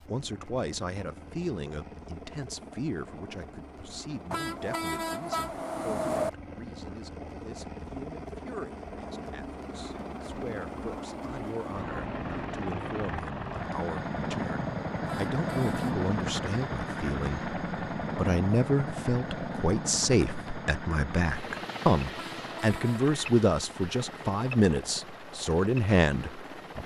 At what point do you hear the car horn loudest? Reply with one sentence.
The loudest moment of the car horn is at 6 seconds.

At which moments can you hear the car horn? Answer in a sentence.
The car horn can be heard from 4.3 to 6.3 s, from 15.1 to 16.0 s and from 22.1 to 23.1 s.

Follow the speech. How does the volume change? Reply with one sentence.
The loudness of the speech goes down, then up.